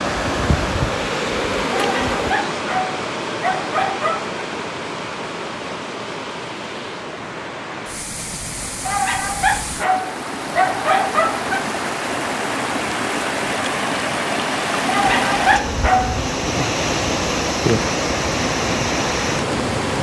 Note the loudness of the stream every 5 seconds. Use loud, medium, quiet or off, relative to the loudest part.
loud, medium, loud, loud.